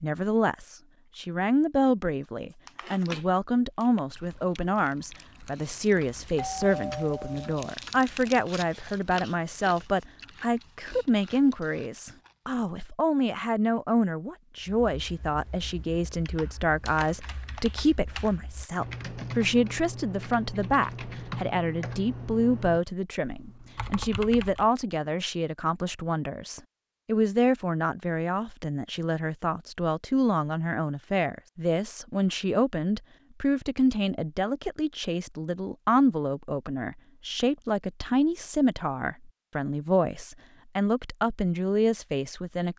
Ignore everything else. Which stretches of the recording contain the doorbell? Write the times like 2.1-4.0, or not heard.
6.0-7.6.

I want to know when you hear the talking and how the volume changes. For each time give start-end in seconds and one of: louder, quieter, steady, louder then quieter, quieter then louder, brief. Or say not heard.
0.0-42.7 steady.